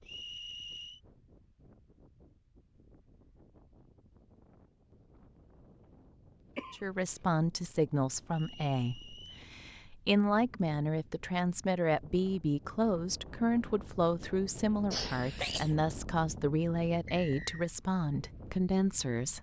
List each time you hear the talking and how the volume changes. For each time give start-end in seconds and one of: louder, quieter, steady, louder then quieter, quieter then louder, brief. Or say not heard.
6.7-19.3 steady.